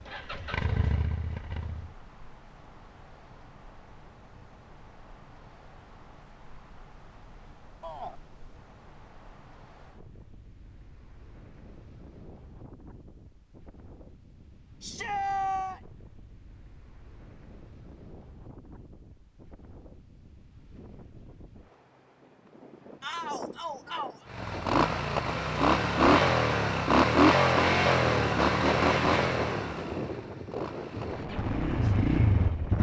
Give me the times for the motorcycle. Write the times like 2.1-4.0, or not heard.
0.1-1.9, 24.2-32.7.